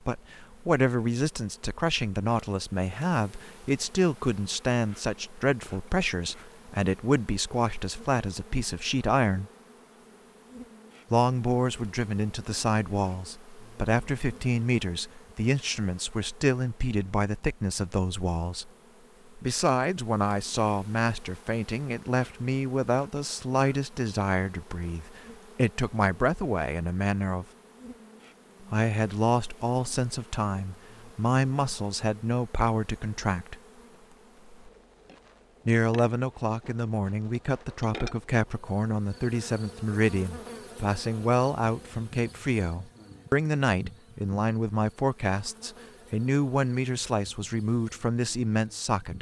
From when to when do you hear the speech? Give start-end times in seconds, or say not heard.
0.1-9.4, 11.1-18.7, 19.4-27.4, 28.7-33.5, 35.6-49.1.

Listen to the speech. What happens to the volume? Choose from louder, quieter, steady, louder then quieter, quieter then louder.
steady.